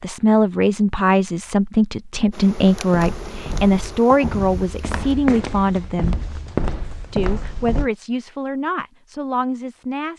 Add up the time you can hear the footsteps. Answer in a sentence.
The footsteps can be heard for 5 seconds in total.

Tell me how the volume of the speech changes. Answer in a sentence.
The volume of the speech goes down.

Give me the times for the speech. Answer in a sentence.
The speech can be heard from 0.0 to 6.2 s and from 7.1 to 10.1 s.